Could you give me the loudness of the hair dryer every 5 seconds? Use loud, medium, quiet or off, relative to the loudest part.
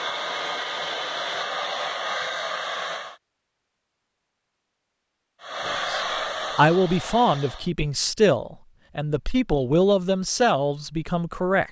loud, loud, off.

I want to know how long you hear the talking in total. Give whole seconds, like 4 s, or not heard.
6 s.